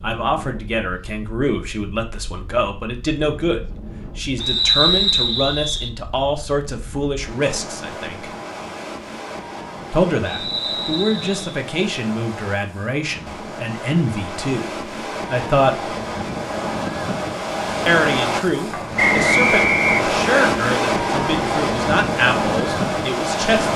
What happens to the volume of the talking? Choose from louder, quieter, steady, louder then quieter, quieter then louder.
steady.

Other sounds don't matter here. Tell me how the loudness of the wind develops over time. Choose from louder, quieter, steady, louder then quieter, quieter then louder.
louder.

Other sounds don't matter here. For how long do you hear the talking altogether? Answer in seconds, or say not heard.
20 s.